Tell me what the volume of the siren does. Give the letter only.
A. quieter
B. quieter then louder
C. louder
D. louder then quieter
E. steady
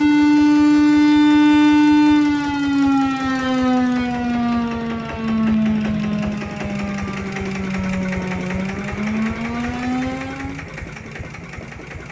A.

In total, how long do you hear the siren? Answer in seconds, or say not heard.
11 s.